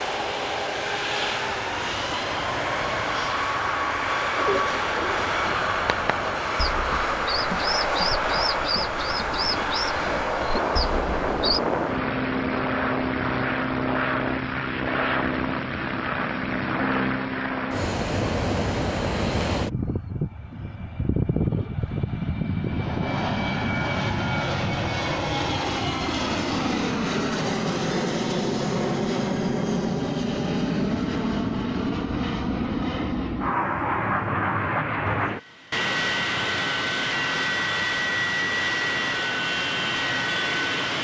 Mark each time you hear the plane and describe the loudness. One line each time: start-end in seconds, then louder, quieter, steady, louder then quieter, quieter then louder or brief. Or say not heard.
0.0-40.9 steady.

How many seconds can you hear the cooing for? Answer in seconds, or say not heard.
7 s.